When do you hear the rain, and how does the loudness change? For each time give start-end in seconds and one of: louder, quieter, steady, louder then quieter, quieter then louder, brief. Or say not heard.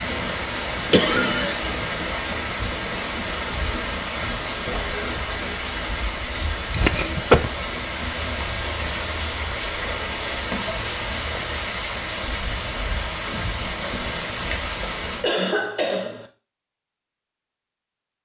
0.0-15.2 steady.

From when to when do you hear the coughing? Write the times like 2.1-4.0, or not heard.
0.9-1.7, 6.7-7.5, 15.2-16.2.